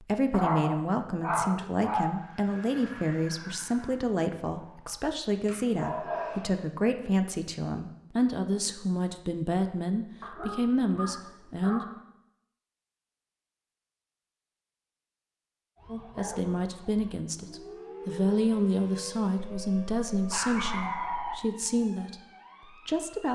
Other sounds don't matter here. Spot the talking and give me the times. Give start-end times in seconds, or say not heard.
0.0-11.8, 15.9-23.3.